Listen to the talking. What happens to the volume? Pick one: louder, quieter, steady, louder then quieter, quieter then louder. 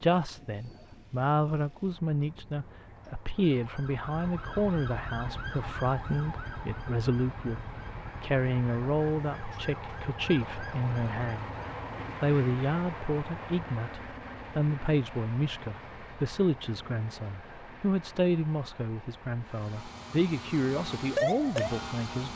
steady.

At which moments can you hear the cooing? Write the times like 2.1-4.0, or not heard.
not heard.